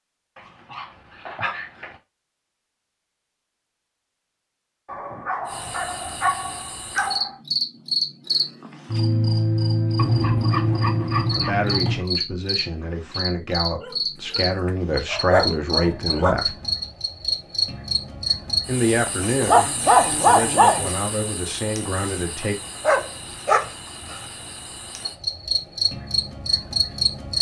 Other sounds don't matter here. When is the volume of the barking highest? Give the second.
20 s.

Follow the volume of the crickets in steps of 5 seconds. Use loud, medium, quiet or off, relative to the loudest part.
off, loud, loud, loud, quiet, loud.